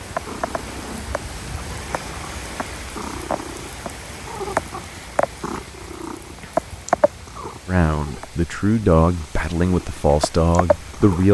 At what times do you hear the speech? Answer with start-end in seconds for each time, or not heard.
7.7-11.2.